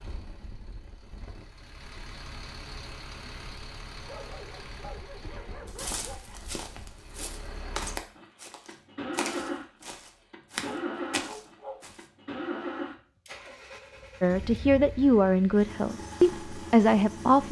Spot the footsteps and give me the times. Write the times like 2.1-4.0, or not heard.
5.7-12.1.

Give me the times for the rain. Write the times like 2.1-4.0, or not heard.
not heard.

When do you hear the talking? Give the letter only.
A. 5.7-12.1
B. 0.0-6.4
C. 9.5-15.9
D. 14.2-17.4
D.